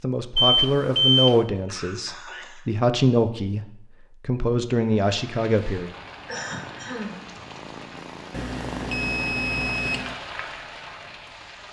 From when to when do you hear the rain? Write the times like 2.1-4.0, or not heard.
5.0-11.6.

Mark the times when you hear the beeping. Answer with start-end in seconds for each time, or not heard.
0.3-1.4, 8.3-10.2.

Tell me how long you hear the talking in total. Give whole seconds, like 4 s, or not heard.
6 s.